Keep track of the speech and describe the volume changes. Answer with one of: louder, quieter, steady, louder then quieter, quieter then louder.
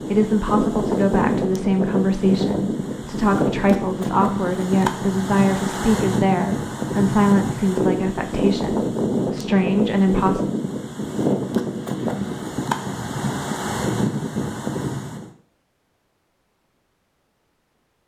steady.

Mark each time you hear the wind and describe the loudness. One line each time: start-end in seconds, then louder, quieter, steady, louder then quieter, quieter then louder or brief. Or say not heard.
0.0-15.3 steady.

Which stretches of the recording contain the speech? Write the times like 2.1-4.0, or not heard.
0.0-10.4.